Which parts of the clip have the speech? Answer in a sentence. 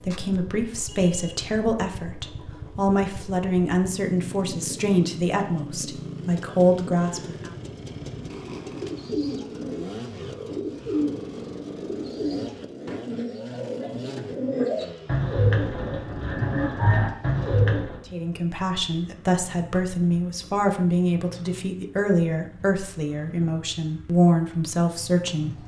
The speech can be heard from 0.0 to 7.5 s and from 18.1 to 25.6 s.